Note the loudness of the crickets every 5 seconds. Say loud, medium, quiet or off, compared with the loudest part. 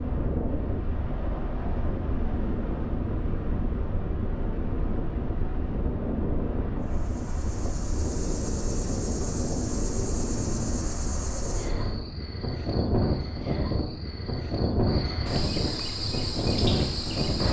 off, medium, medium, loud.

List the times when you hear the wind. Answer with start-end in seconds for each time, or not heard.
0.0-17.4.